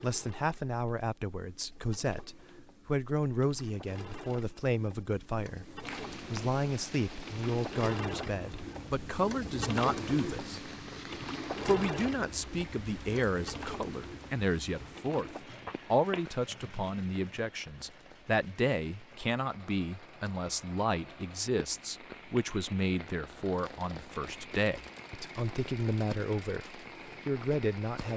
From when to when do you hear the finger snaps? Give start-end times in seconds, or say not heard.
5.8-6.5, 15.7-16.2.